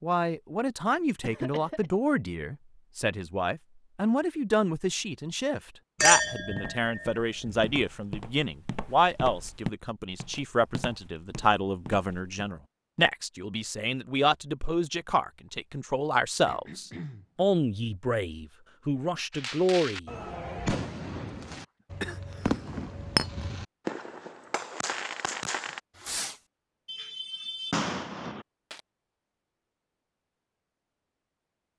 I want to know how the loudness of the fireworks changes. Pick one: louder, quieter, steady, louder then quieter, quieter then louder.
steady.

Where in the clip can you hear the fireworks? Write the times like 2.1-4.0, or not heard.
19.3-28.8.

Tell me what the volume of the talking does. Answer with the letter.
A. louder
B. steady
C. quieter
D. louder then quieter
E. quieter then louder
B.